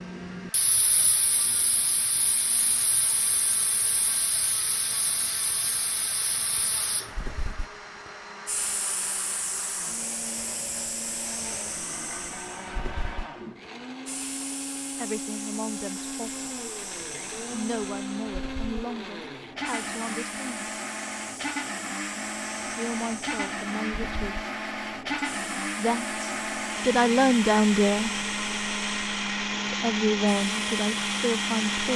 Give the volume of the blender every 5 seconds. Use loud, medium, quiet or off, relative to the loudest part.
quiet, quiet, medium, medium, medium, loud, loud.